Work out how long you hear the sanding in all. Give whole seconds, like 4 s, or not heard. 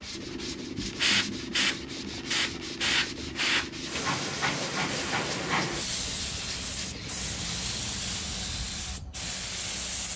9 s.